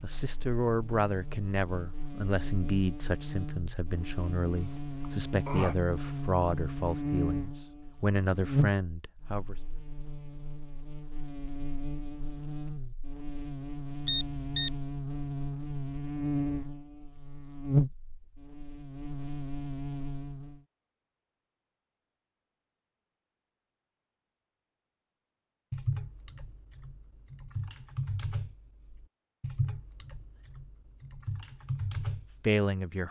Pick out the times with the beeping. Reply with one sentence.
The beeping can be heard from 14.1 to 14.8 s.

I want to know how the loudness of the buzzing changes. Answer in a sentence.
The loudness of the buzzing goes up.